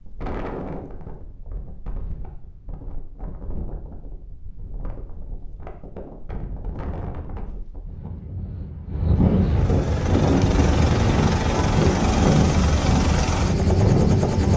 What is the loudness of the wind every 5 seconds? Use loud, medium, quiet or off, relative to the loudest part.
quiet, medium, loud.